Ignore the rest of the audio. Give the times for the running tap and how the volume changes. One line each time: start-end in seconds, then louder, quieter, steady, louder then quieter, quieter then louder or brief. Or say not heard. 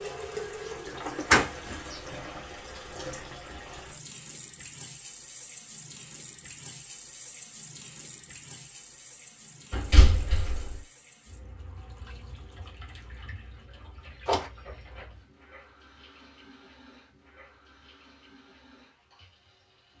0.0-19.9 quieter.